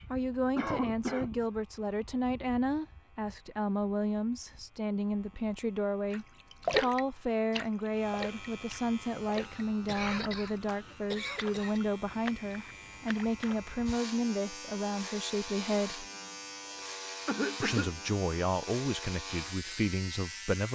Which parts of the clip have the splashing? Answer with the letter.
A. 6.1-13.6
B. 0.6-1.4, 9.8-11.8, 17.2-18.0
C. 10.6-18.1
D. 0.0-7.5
A.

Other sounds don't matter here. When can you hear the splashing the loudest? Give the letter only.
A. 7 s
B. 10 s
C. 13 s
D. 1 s
A.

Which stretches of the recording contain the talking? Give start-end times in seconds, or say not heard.
0.1-16.1, 17.6-20.7.